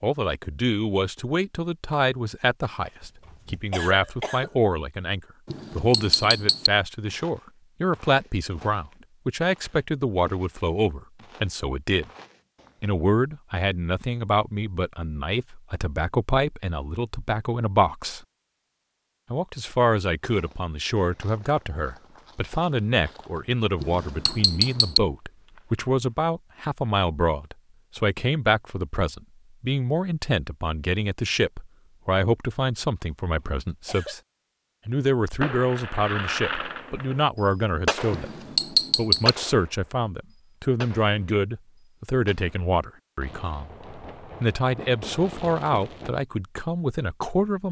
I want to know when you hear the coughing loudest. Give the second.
4 s.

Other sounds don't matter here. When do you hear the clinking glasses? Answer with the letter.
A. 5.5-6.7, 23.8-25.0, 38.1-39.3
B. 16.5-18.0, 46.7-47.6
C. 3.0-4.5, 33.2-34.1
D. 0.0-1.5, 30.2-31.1
A.